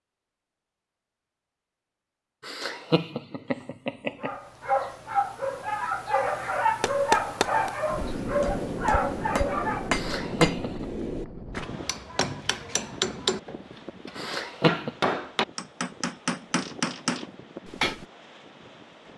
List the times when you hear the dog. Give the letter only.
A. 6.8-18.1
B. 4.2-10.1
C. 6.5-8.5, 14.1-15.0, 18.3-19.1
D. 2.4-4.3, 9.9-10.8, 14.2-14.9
B.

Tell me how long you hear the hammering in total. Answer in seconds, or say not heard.
11 s.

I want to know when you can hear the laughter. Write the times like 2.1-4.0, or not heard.
2.4-4.3, 9.9-10.8, 14.2-14.9.